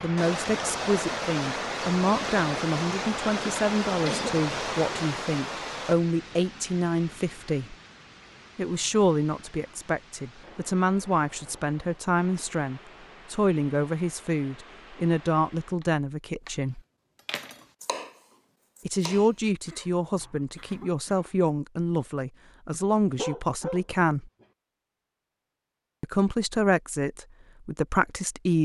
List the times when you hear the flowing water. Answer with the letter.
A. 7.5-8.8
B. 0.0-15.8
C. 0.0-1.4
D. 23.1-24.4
B.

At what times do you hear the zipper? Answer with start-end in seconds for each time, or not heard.
not heard.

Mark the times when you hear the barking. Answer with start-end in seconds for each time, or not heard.
23.1-24.4.